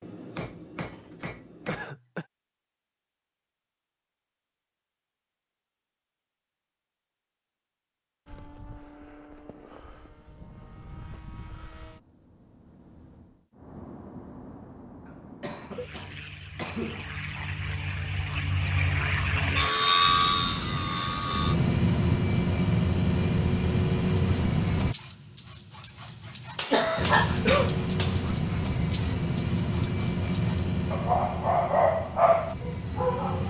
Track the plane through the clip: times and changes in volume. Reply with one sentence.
You can hear the plane from 8.2 to 24.9 s, getting louder; and from 26.9 to 33.4 s, getting quieter.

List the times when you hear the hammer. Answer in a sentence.
You can hear the hammer from 0.0 to 1.9 s and from 26.6 to 28.2 s.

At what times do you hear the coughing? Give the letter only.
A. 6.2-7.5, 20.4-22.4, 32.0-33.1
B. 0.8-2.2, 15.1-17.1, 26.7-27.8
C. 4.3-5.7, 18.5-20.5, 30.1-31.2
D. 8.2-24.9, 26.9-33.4
B.